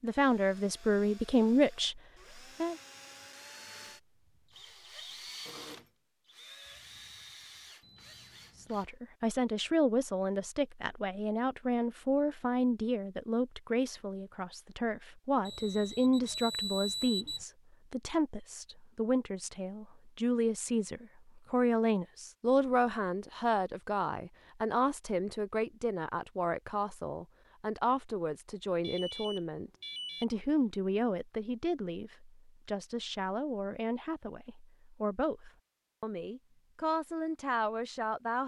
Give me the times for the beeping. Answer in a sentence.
You can hear the beeping from 7.8 to 8.8 s, from 15.4 to 17.4 s and from 28.8 to 30.2 s.